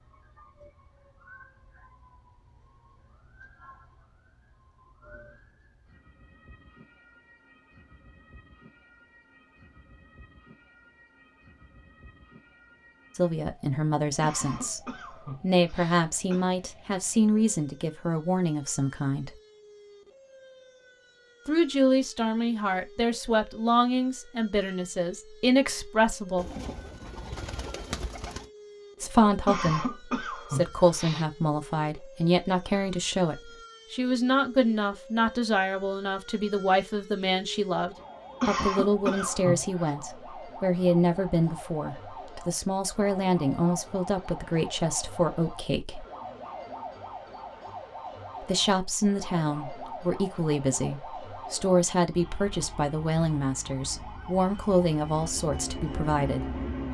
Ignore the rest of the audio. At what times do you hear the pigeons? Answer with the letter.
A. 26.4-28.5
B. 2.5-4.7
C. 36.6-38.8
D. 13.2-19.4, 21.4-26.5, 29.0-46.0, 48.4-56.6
A.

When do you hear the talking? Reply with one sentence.
The talking can be heard from 13.2 to 19.4 s, from 21.4 to 26.5 s, from 29.0 to 46.0 s and from 48.4 to 56.6 s.